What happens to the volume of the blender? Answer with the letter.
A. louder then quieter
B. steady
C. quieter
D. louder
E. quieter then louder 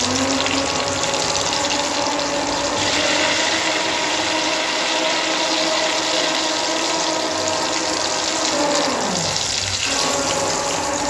B.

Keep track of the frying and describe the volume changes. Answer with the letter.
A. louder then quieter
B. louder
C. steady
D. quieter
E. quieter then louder
C.